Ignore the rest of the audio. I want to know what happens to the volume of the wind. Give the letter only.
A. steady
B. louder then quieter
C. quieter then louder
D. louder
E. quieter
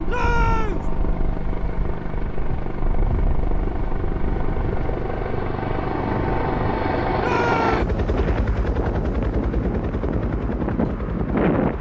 D.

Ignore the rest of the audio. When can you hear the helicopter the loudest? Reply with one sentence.
The volume of the helicopter peaks at 7 seconds.